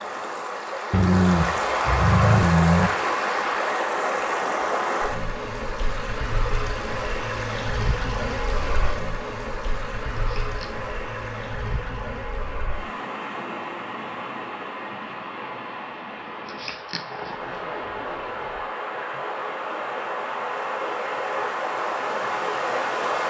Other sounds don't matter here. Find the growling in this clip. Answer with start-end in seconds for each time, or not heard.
0.9-2.9, 10.2-10.7, 16.4-17.4.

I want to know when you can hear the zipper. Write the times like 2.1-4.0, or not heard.
17.3-18.6.